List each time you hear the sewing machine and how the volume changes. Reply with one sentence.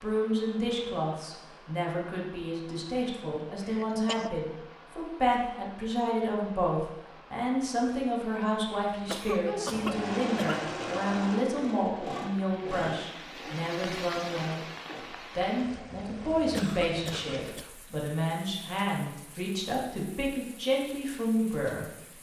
The sewing machine can be heard from 9.7 to 15.0 s, getting quieter.